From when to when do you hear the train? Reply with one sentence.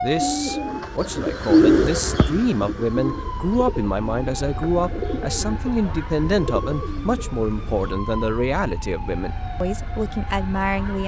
The train can't be heard in this clip.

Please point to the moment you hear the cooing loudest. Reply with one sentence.
The loudest moment of the cooing is at 2 seconds.